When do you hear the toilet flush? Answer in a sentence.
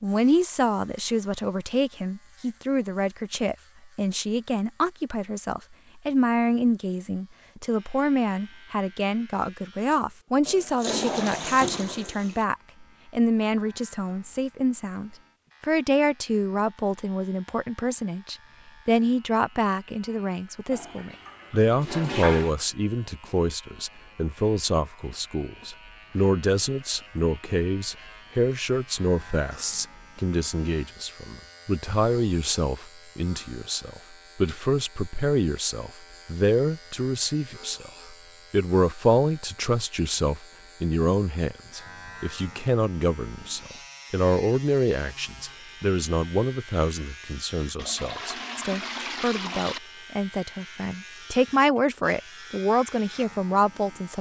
You can hear the toilet flush from 10.4 to 12.4 s, from 20.7 to 22.6 s and from 47.8 to 49.8 s.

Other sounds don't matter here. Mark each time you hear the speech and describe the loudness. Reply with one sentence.
You can hear the speech from 0.0 to 54.1 s, at a steady volume.